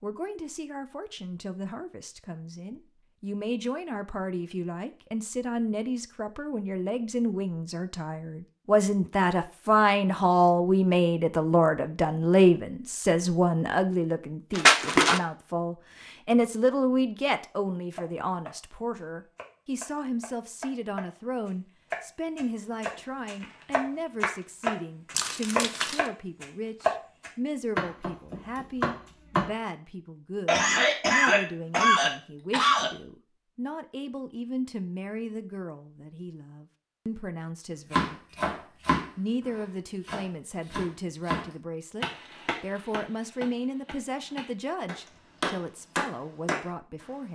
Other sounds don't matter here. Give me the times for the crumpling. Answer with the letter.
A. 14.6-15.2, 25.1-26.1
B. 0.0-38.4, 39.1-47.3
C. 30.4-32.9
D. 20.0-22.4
A.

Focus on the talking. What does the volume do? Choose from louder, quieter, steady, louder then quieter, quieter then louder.
louder then quieter.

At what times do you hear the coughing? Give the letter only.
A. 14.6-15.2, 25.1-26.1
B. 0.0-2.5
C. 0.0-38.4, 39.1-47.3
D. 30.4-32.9
D.